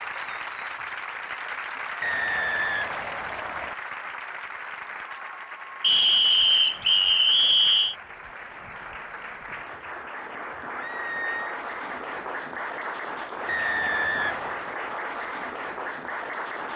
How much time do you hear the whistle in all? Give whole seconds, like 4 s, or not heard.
5 s.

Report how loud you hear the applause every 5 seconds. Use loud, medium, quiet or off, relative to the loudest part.
loud, medium, loud, loud.